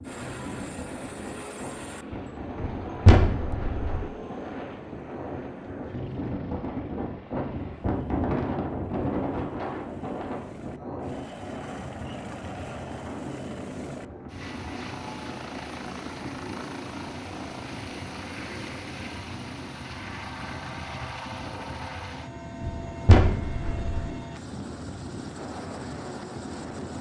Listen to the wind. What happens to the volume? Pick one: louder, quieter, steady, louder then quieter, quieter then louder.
louder then quieter.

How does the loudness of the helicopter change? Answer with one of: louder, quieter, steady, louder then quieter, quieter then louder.
quieter then louder.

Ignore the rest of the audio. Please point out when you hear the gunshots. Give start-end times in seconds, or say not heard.
2.6-4.0, 22.6-24.1.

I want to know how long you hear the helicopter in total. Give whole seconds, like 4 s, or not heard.
27 s.